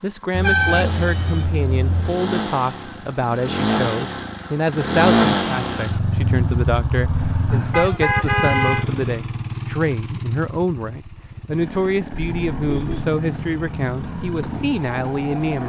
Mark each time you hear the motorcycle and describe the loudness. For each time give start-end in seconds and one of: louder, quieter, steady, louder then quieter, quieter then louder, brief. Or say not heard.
0.0-15.6 louder then quieter.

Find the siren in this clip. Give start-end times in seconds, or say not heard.
12.2-15.6.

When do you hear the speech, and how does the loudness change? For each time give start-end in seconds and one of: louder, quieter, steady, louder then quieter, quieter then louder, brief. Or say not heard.
0.0-15.6 steady.